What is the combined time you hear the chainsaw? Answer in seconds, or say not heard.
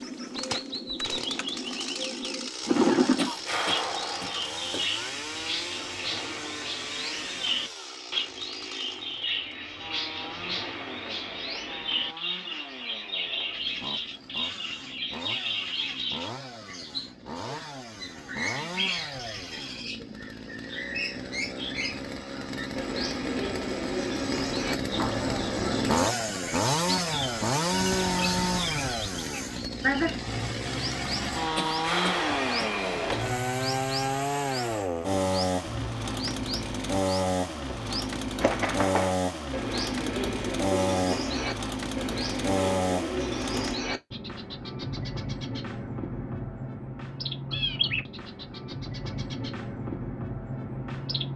44 s.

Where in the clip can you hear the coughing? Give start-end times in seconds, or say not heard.
3.1-4.8, 31.6-33.2.